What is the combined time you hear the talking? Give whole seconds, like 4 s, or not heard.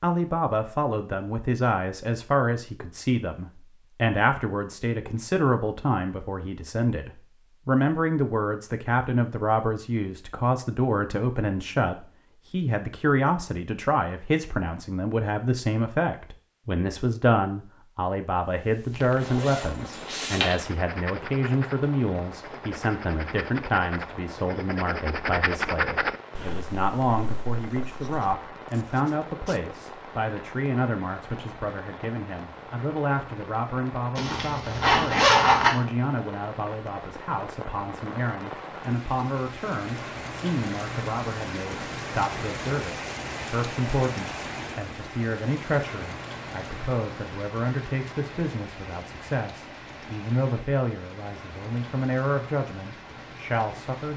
54 s.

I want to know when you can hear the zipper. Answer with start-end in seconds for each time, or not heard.
19.2-20.6, 34.1-35.7.